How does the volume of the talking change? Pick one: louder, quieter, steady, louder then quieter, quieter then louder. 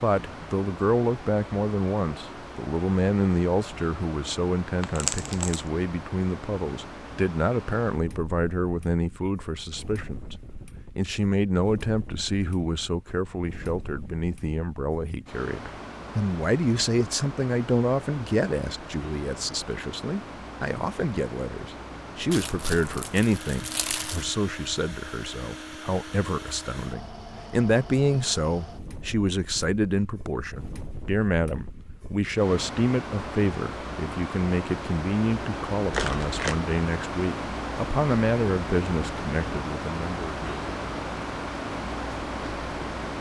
steady.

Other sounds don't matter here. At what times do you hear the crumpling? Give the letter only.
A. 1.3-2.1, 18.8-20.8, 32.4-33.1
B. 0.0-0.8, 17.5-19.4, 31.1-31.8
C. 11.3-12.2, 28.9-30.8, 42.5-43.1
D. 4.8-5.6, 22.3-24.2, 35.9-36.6
D.